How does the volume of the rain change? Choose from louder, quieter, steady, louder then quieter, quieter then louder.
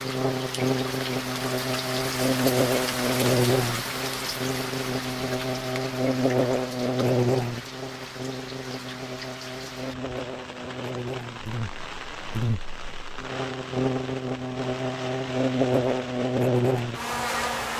quieter.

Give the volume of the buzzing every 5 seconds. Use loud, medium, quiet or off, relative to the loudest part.
loud, loud, medium, loud.